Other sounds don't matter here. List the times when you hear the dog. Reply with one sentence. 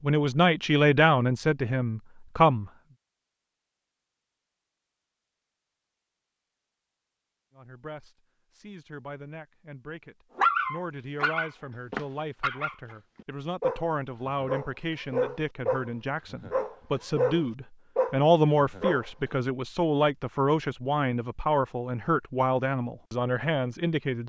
You can hear the dog from 10.3 to 19.1 s.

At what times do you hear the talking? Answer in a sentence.
The talking can be heard from 0.0 to 2.7 s and from 7.5 to 24.2 s.